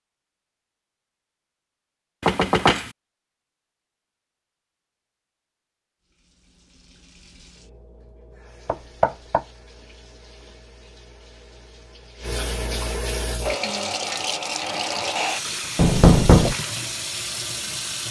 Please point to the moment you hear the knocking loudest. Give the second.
16 s.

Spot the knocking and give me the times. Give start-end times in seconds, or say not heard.
2.2-2.9, 8.7-9.4, 15.8-16.6.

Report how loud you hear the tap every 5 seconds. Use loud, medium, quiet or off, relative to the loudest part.
off, quiet, loud, loud.